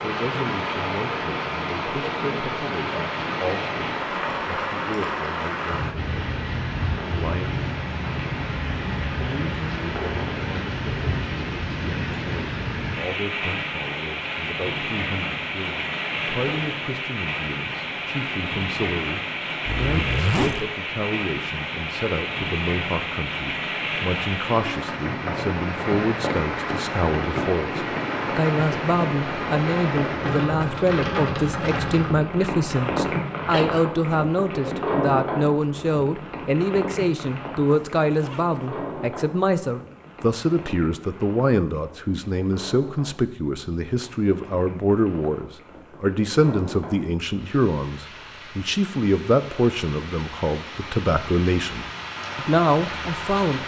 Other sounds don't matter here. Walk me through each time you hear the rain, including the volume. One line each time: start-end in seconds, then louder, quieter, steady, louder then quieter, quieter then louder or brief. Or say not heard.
0.0-53.6 quieter.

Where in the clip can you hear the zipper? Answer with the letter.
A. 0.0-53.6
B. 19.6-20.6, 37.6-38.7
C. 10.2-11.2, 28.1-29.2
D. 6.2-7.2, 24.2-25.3
B.